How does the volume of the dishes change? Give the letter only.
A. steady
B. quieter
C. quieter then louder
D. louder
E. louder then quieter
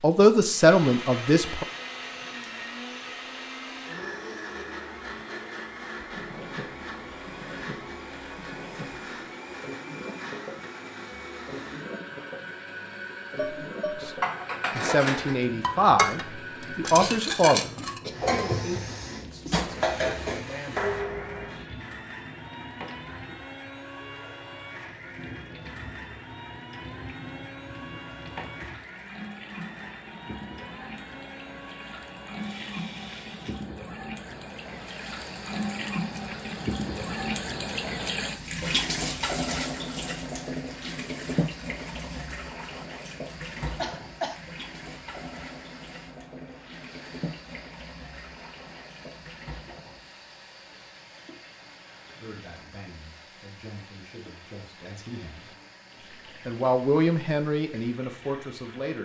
A.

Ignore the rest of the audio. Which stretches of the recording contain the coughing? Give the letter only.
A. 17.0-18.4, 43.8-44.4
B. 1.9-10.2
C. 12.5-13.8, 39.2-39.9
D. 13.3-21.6
A.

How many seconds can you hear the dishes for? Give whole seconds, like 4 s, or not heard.
8 s.